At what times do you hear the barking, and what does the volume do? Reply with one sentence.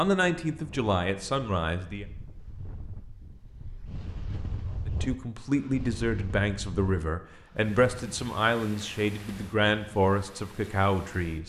The barking can't be heard in this clip.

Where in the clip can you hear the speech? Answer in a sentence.
You can hear the speech from 0.0 to 2.0 s and from 4.8 to 11.4 s.